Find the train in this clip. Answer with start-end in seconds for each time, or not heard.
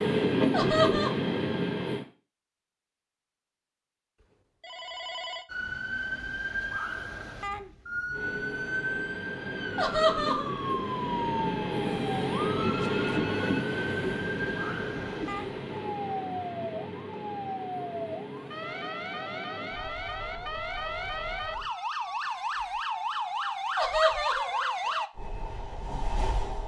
0.0-2.0, 8.1-21.7, 25.1-26.6.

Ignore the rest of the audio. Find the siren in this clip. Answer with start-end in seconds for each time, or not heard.
5.5-25.1.